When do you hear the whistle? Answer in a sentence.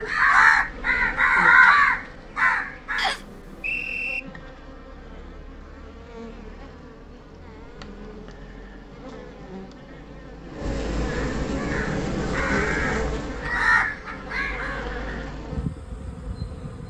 The whistle can be heard from 3.0 to 4.2 s.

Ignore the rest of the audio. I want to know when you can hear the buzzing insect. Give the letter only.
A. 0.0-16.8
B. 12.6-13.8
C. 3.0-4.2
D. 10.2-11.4
A.